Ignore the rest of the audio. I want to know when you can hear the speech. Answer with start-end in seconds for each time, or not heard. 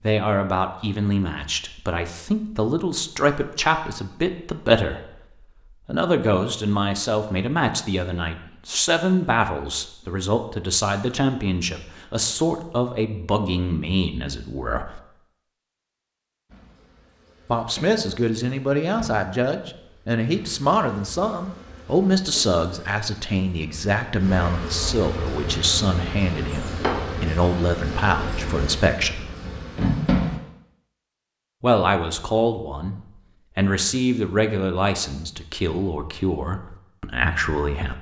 0.0-5.1, 5.8-15.0, 17.4-29.3, 31.6-33.0, 33.5-37.9.